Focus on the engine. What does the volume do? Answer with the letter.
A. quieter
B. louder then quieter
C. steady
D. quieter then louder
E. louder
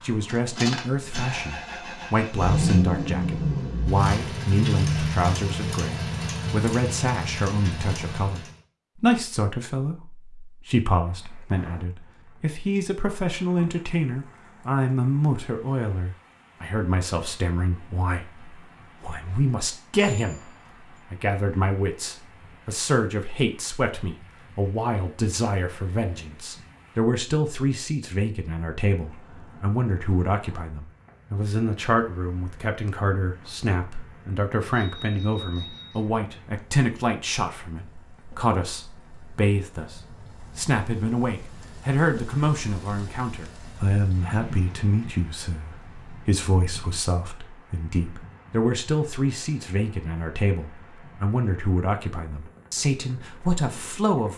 B.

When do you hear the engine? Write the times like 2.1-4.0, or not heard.
0.0-8.6.